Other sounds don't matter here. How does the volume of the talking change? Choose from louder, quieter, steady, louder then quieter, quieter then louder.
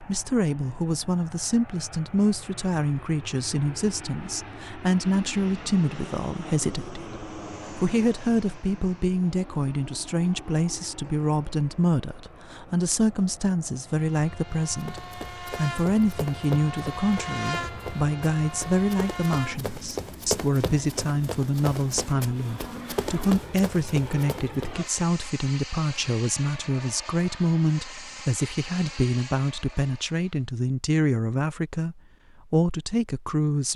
steady.